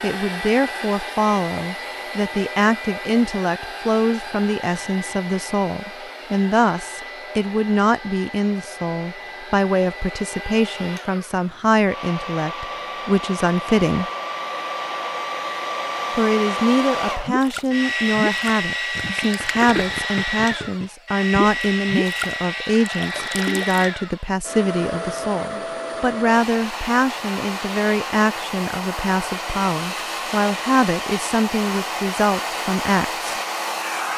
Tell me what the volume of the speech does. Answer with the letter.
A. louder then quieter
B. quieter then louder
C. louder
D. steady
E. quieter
D.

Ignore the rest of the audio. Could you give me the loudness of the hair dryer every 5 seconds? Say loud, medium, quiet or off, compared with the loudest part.
medium, medium, medium, loud, loud, loud, loud.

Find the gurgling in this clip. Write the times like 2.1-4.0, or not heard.
17.2-23.9.